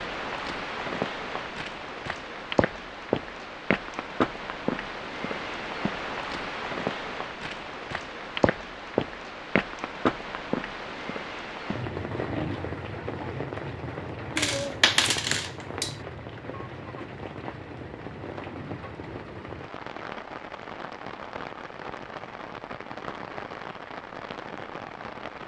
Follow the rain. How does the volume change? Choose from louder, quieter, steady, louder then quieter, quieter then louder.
quieter.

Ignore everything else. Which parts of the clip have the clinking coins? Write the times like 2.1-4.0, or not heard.
14.3-15.9.